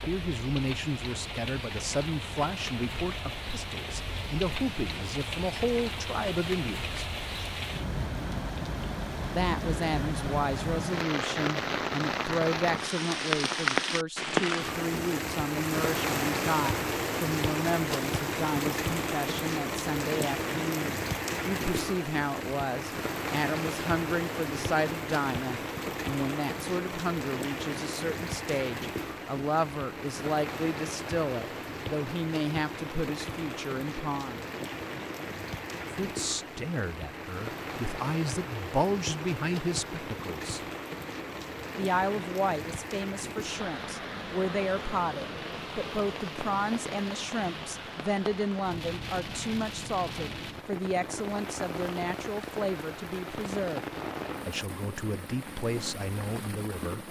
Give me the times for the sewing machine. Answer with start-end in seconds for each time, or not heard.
not heard.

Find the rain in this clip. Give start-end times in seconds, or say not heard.
0.0-57.0.